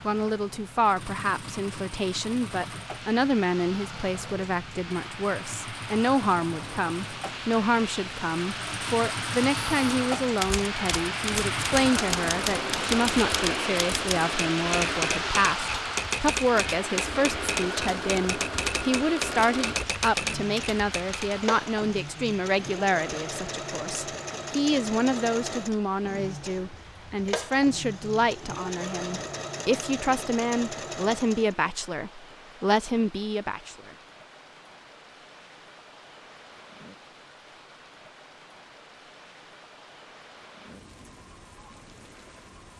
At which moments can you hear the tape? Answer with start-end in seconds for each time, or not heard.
not heard.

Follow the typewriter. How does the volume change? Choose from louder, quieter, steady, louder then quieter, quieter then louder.
steady.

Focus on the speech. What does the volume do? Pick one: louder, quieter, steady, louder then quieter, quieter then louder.
steady.